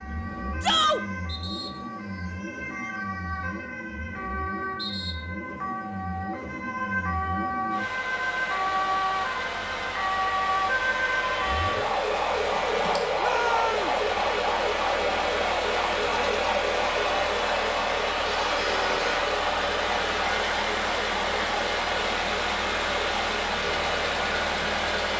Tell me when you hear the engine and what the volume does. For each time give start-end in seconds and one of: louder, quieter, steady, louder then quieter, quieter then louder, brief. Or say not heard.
0.0-25.1 louder.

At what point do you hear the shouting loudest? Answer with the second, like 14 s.
1 s.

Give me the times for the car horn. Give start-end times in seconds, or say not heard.
18.2-19.2.